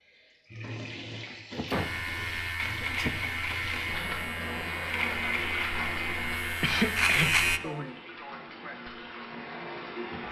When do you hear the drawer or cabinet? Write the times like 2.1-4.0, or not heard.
not heard.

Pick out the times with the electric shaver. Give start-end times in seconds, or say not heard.
1.7-7.6.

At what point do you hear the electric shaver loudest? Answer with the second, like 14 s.
7 s.